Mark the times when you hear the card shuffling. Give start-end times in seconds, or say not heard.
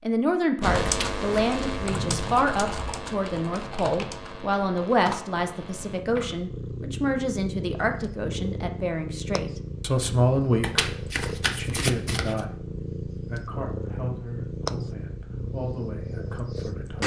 0.8-1.5, 10.6-12.4.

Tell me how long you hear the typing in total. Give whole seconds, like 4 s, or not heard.
6 s.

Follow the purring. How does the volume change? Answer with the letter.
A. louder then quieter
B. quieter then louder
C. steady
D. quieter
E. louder
C.